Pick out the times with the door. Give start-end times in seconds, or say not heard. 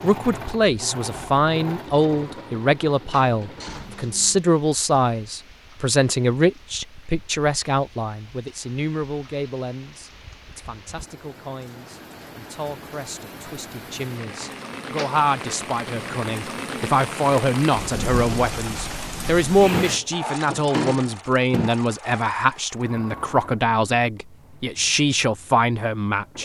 3.2-4.2, 14.8-15.2, 19.7-21.7.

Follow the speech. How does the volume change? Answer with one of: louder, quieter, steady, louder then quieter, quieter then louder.
quieter then louder.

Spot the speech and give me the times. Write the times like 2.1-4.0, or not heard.
0.0-26.4.